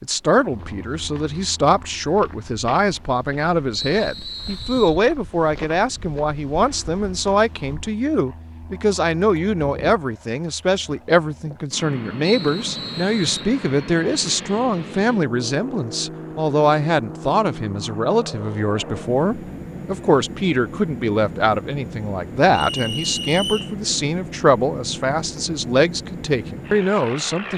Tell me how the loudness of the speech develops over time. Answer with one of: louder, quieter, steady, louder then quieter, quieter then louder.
steady.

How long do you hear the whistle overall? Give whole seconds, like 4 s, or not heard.
4 s.